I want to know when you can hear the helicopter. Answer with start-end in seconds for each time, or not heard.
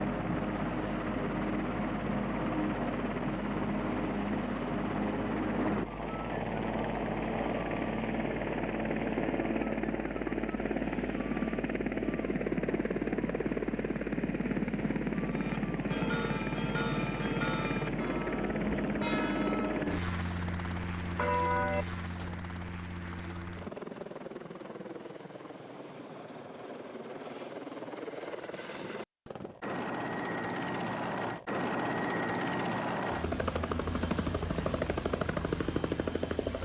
0.0-36.6.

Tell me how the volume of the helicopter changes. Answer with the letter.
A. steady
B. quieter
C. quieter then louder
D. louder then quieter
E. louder
C.